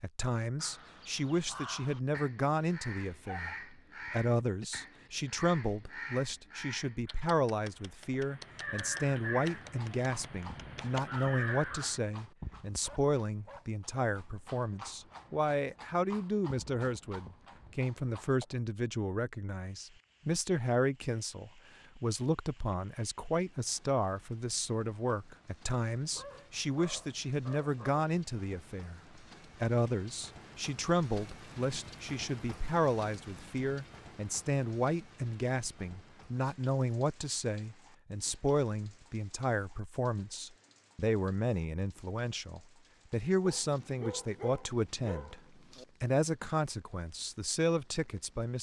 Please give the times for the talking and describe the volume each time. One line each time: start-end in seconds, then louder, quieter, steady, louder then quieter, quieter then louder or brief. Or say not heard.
0.0-29.0 steady
29.6-45.4 steady
46.0-48.5 brief.